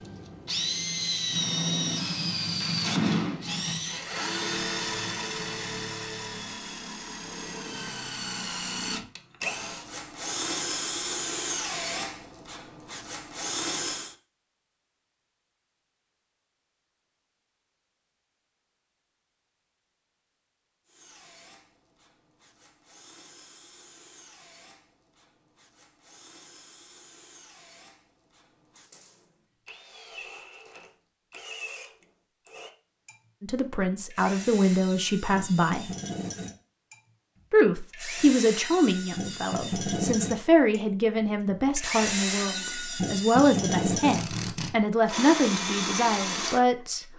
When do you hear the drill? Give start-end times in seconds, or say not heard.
0.0-14.2, 20.9-47.0.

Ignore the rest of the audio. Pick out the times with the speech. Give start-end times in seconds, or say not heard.
33.4-35.9, 37.5-47.0.